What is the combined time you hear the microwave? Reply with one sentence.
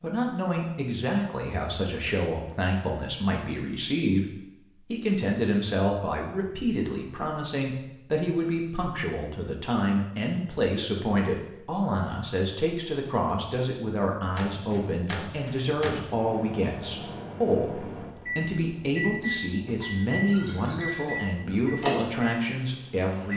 The microwave can be heard for 9 seconds in total.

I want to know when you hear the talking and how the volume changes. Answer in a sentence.
You can hear the talking from 0.0 to 23.3 s, at a steady volume.